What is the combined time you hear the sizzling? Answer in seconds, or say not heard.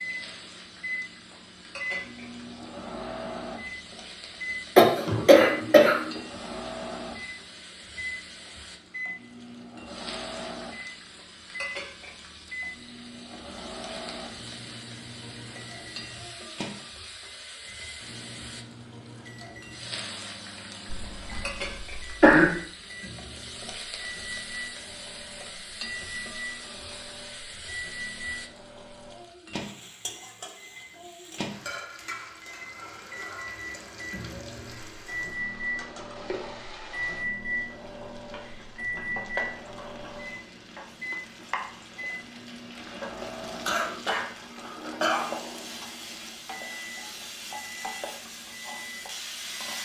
50 s.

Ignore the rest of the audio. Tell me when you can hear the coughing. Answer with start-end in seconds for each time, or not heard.
4.8-6.2, 20.9-22.5, 43.6-45.2.